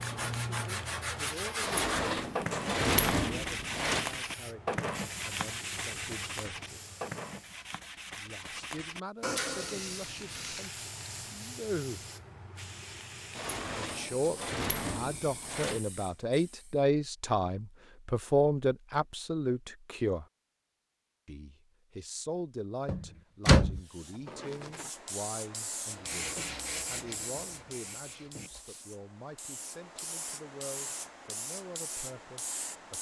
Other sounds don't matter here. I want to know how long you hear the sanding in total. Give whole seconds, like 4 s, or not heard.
14 s.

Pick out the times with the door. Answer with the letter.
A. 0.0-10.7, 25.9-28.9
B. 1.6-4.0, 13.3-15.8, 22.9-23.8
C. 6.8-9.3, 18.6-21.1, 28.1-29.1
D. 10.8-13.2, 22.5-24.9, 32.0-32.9
B.